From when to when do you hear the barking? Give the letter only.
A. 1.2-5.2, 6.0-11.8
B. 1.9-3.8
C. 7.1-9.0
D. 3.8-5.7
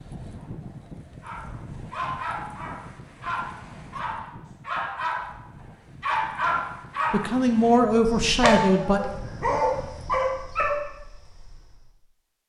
A.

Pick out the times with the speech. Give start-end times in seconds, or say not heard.
7.1-9.0.